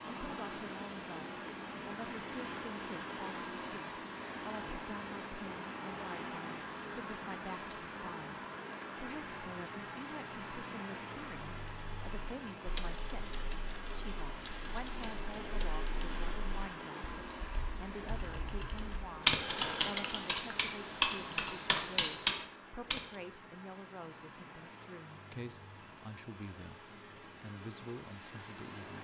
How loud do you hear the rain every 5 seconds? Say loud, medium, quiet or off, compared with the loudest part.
loud, loud, loud, loud, medium, medium.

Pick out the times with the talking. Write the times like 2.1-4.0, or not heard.
0.1-28.9.